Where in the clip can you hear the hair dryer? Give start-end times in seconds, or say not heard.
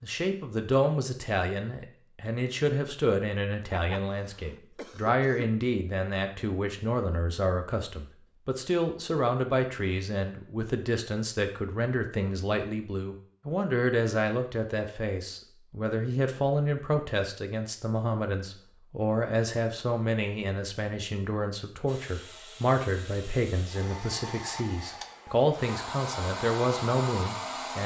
21.9-27.8.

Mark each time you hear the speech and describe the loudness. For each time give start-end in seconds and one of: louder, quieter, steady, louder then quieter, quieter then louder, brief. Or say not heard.
0.0-27.8 steady.